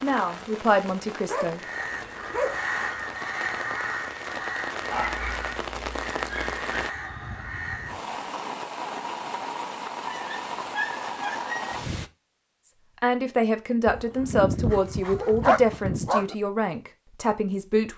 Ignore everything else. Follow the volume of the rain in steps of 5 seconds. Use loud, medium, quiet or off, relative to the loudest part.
medium, loud, loud, off.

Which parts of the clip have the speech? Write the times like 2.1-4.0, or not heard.
0.0-1.6, 13.0-17.9.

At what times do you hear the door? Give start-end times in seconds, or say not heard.
not heard.